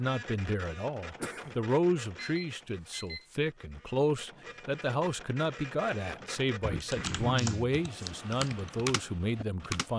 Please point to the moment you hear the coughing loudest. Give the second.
7 s.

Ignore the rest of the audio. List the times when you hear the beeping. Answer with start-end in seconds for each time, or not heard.
2.1-3.4.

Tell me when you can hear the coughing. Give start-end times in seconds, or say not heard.
1.1-1.6, 6.6-7.5.